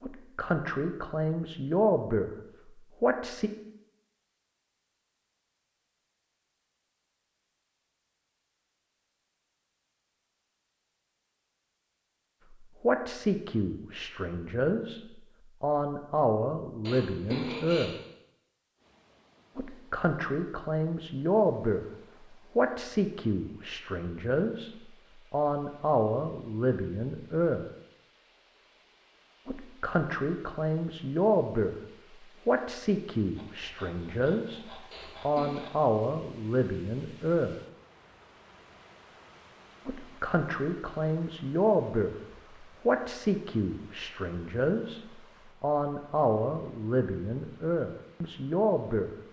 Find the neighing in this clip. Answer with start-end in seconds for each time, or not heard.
16.9-18.0, 34.9-35.6.